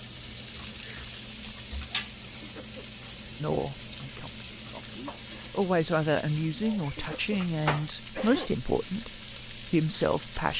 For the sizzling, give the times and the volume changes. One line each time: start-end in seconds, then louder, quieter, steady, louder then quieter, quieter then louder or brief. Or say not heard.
0.0-10.5 steady.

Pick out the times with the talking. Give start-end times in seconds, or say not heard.
3.4-10.5.